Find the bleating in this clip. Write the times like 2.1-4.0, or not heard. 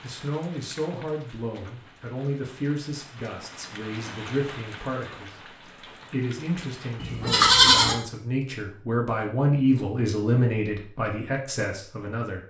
7.0-8.0.